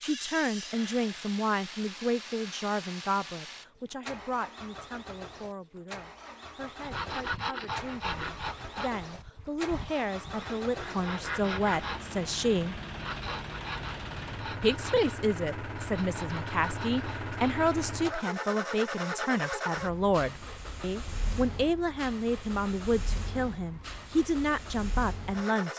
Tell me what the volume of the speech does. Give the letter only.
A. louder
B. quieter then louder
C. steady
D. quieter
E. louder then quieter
B.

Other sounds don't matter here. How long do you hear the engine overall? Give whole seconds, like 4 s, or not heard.
26 s.